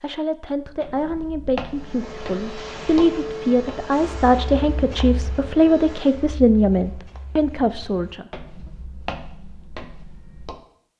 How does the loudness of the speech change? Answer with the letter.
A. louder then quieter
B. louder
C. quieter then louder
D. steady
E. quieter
B.